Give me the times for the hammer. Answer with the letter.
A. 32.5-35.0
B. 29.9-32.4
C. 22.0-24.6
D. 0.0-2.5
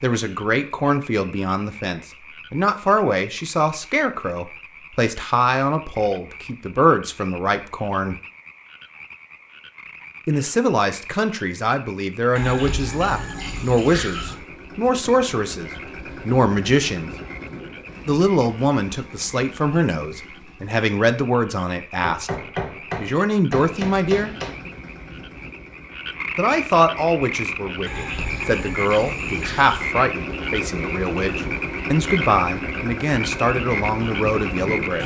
C.